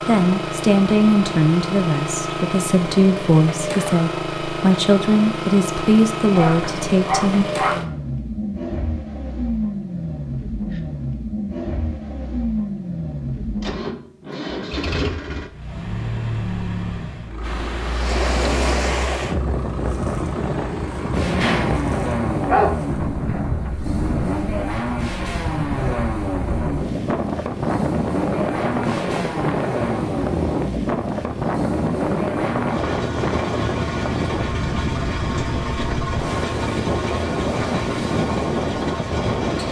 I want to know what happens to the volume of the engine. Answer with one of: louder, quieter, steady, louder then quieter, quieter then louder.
steady.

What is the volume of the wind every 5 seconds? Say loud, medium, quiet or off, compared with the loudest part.
off, off, off, loud, loud, loud, loud, loud.